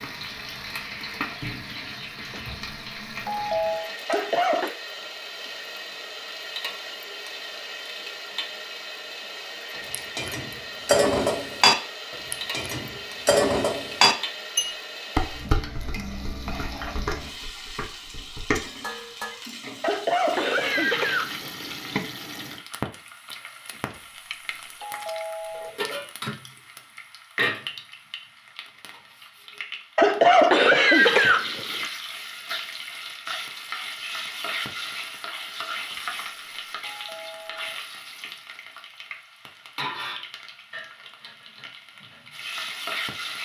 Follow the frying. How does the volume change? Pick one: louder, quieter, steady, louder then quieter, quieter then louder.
steady.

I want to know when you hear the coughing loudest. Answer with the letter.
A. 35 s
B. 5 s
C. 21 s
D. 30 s
D.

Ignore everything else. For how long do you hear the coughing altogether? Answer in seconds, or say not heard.
4 s.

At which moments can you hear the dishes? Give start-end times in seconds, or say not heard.
9.9-19.4.